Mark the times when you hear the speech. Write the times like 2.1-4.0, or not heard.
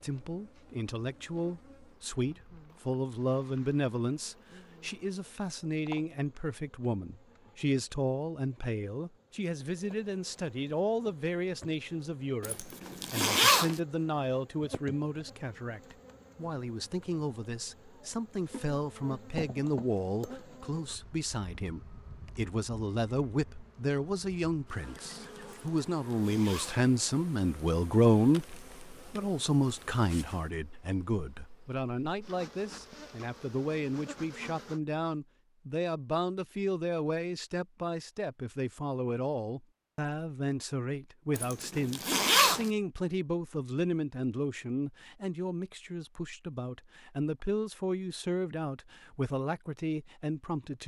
0.0-50.8.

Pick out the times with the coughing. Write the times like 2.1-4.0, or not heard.
not heard.